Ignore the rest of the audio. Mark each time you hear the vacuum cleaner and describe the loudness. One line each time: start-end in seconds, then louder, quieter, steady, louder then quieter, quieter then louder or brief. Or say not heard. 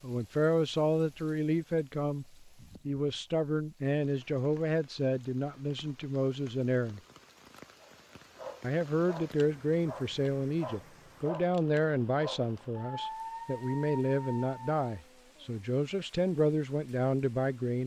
not heard.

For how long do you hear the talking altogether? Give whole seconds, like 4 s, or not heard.
16 s.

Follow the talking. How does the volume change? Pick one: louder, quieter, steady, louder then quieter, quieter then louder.
steady.